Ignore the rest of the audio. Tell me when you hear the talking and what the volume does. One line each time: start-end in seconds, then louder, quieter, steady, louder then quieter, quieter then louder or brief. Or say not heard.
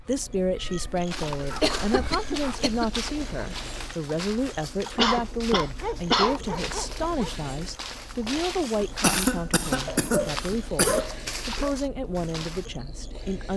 0.0-13.5 steady.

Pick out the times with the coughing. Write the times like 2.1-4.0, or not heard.
0.8-3.0, 5.0-6.3, 9.0-11.1.